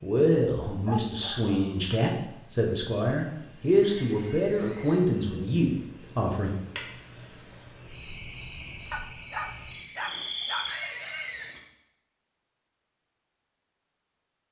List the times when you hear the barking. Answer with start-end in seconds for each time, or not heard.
0.8-1.6, 8.9-10.8.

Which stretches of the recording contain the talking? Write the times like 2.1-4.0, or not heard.
0.0-6.5.